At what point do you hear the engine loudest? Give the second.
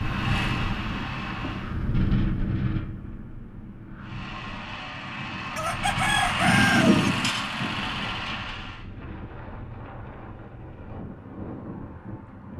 7 s.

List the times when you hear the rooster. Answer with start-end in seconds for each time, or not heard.
5.5-7.1.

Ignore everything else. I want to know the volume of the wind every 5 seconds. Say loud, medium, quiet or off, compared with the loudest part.
loud, medium, medium.